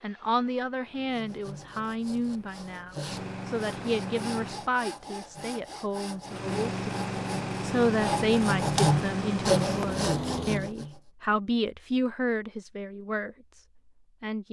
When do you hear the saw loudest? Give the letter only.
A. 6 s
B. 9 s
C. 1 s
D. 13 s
B.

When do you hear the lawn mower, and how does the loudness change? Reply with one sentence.
You can hear the lawn mower from 0.0 to 4.7 s, getting louder; and from 6.2 to 10.7 s, at a steady volume.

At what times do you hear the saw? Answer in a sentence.
The saw can be heard from 1.1 to 11.0 s.